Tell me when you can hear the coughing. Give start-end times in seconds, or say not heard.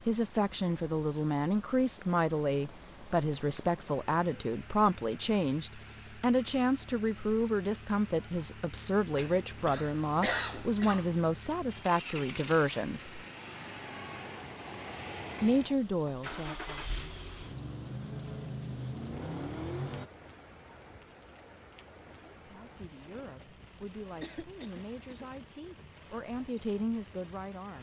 9.2-11.2, 24.2-25.2.